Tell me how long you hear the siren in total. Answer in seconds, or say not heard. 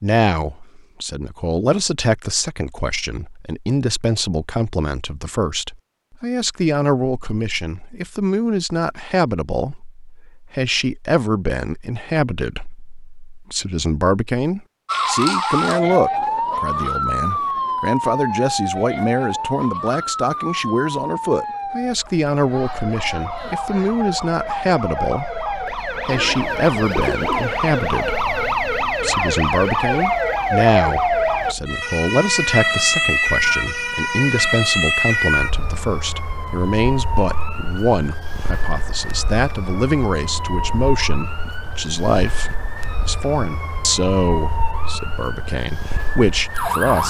32 s.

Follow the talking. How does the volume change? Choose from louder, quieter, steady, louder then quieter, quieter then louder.
steady.